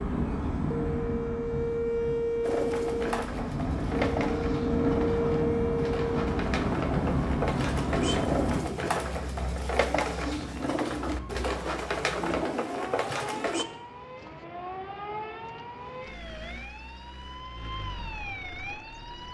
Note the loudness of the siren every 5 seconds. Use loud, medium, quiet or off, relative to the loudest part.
loud, loud, medium, medium.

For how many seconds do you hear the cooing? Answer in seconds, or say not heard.
11 s.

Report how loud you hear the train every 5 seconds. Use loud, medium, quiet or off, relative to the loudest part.
loud, loud, off, off.